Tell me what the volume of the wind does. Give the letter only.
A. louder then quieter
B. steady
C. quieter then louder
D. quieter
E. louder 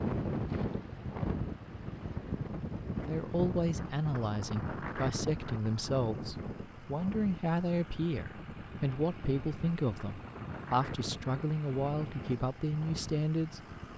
D.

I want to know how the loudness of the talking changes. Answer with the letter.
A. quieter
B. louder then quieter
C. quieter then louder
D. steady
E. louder
D.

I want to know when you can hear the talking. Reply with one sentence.
The talking can be heard from 3.0 to 13.6 s.